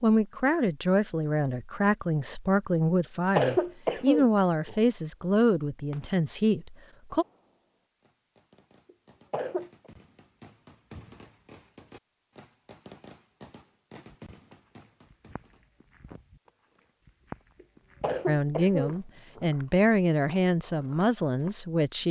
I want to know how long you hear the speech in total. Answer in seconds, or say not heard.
11 s.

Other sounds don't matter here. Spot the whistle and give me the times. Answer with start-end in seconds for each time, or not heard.
not heard.